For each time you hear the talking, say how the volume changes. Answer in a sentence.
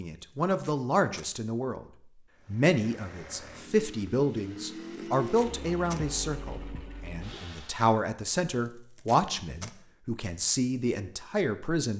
You can hear the talking briefly from 0.0 to 1.9 s; and from 2.5 to 11.9 s, at a steady volume.